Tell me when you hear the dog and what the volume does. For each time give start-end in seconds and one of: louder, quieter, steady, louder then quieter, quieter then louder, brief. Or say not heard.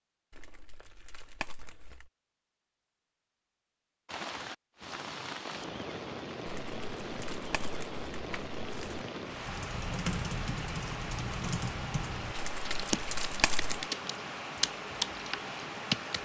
not heard.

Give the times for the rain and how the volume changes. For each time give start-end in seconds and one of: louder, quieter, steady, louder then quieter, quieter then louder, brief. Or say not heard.
4.0-16.2 steady.